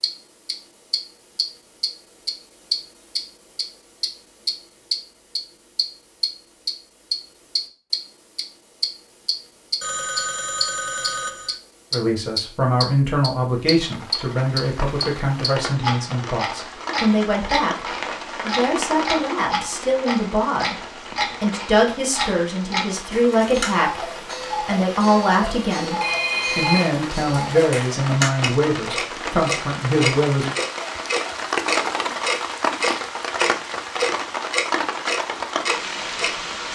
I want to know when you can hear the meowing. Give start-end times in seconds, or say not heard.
not heard.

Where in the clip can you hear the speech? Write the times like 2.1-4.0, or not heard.
11.9-30.5.